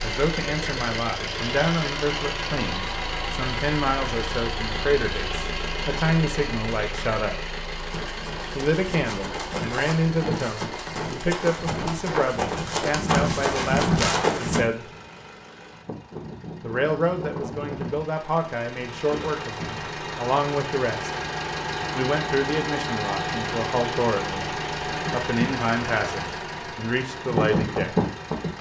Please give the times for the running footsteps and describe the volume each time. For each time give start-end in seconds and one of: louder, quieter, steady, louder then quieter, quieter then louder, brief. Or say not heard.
7.8-14.7 louder.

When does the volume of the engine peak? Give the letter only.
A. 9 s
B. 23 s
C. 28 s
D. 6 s
C.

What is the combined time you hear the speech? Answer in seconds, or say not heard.
24 s.